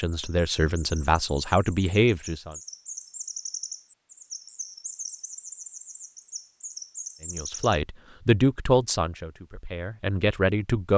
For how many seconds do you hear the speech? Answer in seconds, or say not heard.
6 s.